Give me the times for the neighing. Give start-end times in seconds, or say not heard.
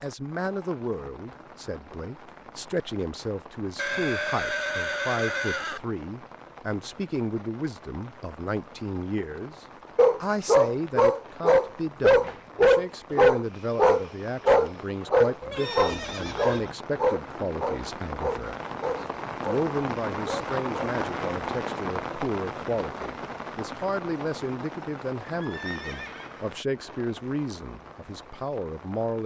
3.8-5.8, 15.4-16.8, 25.4-26.6.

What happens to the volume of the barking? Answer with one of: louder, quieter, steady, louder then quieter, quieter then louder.
quieter.